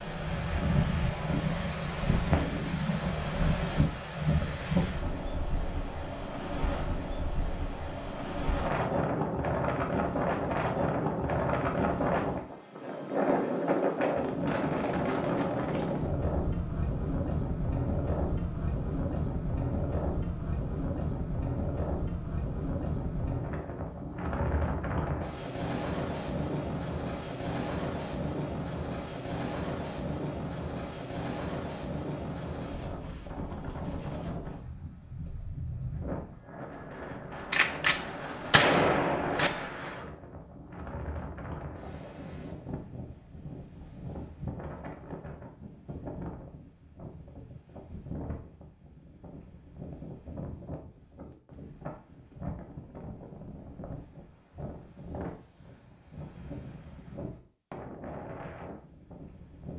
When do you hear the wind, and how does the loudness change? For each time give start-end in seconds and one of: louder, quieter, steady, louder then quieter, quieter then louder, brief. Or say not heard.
0.0-59.7 quieter.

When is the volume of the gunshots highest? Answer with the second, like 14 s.
39 s.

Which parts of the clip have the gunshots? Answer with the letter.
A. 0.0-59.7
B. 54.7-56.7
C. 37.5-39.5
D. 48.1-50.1
C.